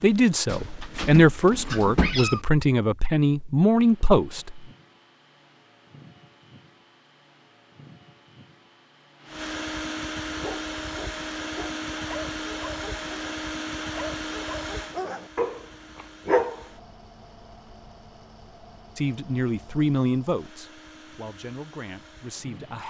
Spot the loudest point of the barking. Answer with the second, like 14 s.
16 s.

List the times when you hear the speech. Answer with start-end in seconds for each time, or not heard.
0.0-4.7, 18.9-22.8.